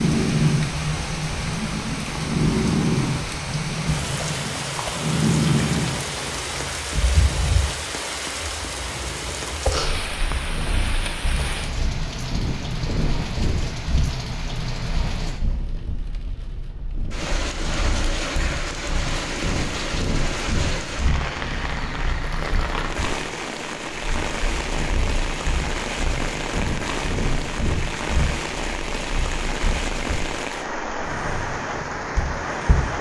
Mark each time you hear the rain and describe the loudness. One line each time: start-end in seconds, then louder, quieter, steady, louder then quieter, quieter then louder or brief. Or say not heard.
0.0-32.9 steady.